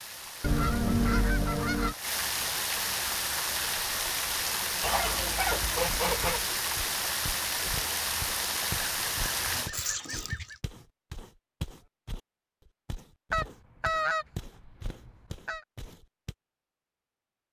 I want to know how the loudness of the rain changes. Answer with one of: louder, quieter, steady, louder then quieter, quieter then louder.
louder.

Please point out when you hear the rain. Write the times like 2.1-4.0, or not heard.
0.0-9.7.